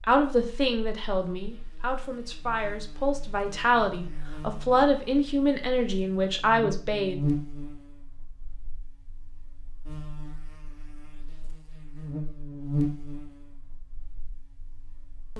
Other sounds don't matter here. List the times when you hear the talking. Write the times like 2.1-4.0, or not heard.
0.0-7.2.